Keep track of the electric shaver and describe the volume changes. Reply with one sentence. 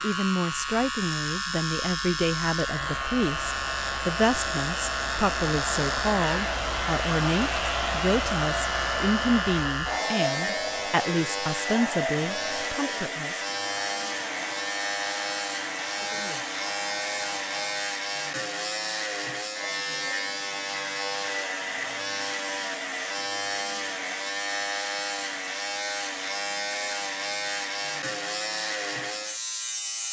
The loudness of the electric shaver stays about the same.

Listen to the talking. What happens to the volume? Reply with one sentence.
The loudness of the talking stays about the same.